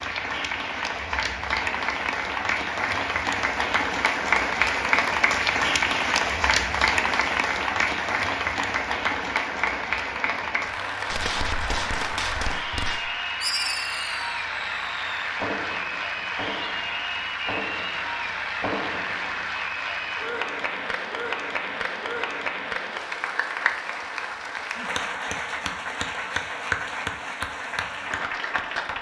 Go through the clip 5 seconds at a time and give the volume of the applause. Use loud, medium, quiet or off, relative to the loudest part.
loud, loud, medium, medium, medium, medium.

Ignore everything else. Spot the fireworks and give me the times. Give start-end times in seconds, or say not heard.
11.1-19.4.